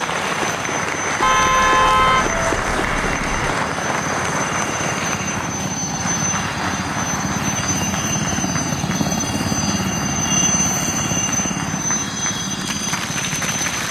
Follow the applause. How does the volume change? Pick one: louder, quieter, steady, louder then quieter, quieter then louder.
quieter.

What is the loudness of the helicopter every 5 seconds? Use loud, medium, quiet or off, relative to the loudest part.
medium, loud, loud.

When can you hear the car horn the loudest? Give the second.
2 s.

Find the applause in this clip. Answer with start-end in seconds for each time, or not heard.
0.0-13.8.